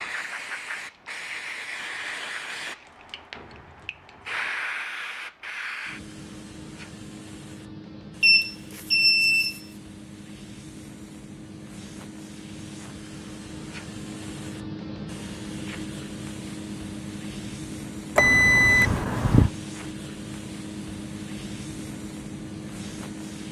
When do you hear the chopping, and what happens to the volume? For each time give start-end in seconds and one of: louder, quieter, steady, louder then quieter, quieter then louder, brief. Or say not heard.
not heard.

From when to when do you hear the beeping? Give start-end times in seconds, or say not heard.
8.2-9.6, 18.1-19.5.